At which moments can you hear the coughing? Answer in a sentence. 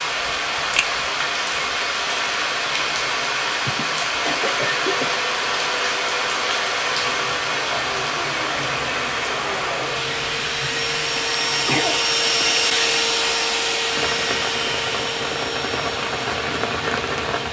You can hear the coughing from 3.6 to 5.2 s and from 11.2 to 12.6 s.